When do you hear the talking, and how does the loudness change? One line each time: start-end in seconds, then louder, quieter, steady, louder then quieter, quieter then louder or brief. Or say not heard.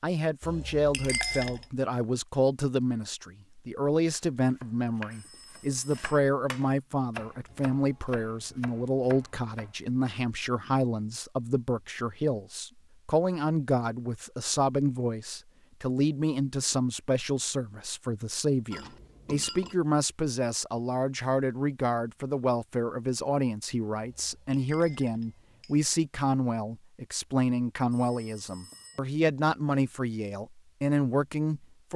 0.0-31.9 steady.